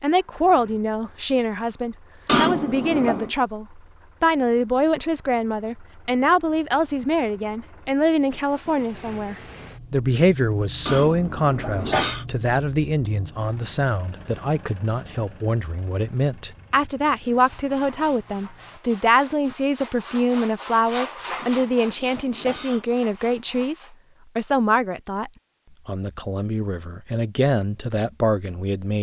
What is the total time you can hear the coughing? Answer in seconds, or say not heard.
4 s.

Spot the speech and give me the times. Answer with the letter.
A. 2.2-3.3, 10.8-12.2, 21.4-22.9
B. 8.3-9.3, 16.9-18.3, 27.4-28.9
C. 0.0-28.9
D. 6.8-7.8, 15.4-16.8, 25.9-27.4
C.